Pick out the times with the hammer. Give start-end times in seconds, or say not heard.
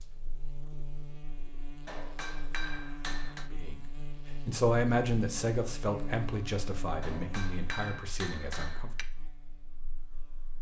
1.9-3.5, 7.0-9.1.